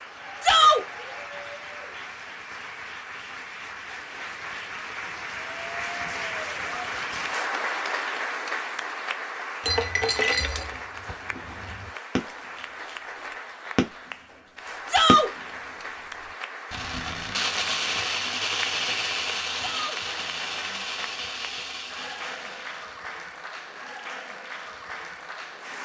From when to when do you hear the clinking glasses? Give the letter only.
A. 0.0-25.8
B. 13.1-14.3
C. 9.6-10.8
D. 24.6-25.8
C.